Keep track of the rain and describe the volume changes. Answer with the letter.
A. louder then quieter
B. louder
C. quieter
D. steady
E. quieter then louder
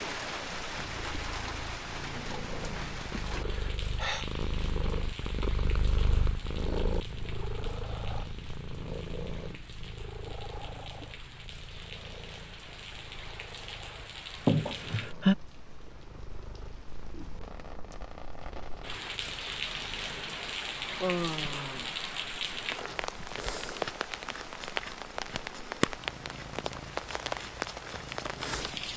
E.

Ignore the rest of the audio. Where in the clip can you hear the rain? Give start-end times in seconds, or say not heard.
0.0-28.9.